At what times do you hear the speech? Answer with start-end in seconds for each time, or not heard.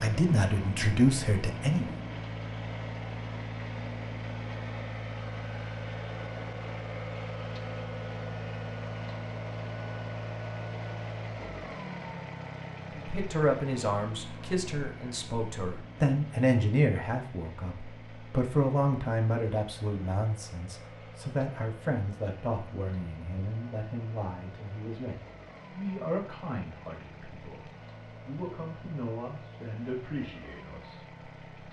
0.0-1.9, 12.9-31.6.